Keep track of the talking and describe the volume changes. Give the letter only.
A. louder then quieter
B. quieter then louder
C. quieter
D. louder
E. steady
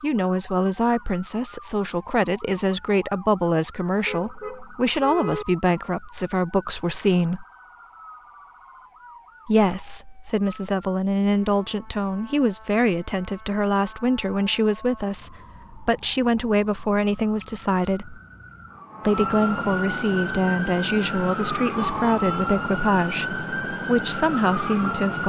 E.